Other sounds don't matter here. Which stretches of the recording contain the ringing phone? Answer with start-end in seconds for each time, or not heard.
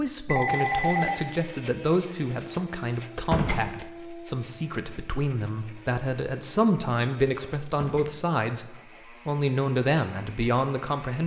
0.2-1.2.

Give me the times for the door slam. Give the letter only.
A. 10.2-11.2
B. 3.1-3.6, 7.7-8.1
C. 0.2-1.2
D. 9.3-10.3
B.